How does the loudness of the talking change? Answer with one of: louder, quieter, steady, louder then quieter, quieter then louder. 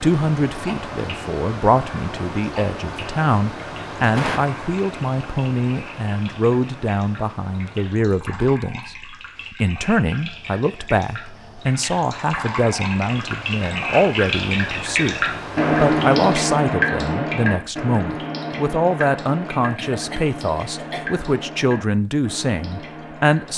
steady.